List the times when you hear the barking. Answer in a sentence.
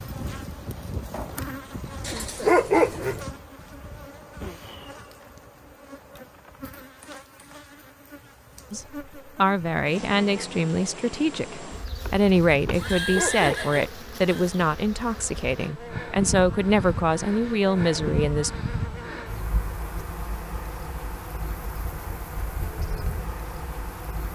You can hear the barking from 2.0 to 3.2 s and from 12.7 to 13.8 s.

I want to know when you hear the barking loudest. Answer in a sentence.
The volume of the barking peaks at 3 seconds.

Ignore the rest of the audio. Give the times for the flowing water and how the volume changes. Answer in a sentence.
The flowing water can't be heard in this clip.